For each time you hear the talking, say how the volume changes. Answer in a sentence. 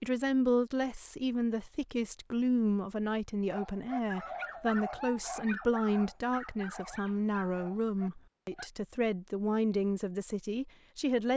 The talking can be heard from 0.0 to 11.3 s, at a steady volume.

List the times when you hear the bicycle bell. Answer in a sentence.
You can't hear the bicycle bell here.